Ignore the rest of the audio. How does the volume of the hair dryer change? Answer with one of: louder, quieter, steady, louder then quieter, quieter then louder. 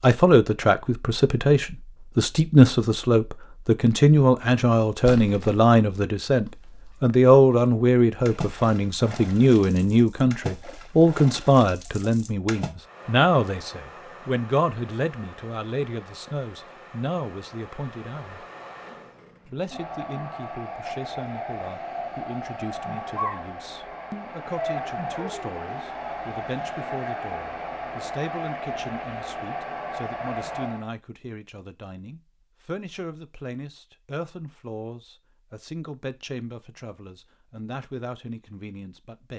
louder.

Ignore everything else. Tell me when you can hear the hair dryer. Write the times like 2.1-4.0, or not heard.
12.8-30.9.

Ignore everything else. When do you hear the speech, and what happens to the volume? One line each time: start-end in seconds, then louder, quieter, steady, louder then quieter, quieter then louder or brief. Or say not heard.
0.0-18.4 quieter
19.4-39.3 steady.